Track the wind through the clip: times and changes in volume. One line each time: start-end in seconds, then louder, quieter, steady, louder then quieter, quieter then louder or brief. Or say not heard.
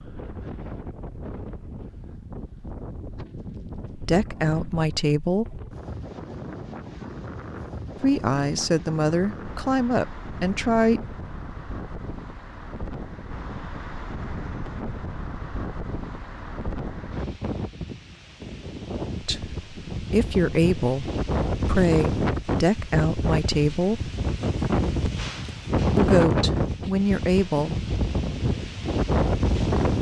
0.0-29.9 louder.